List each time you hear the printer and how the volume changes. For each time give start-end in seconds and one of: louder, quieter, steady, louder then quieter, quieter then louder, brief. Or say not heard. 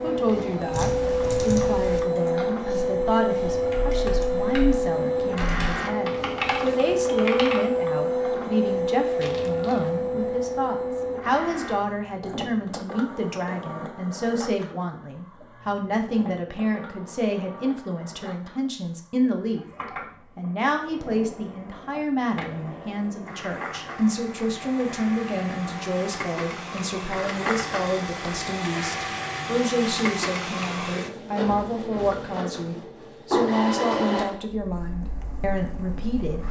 0.0-36.4 quieter then louder.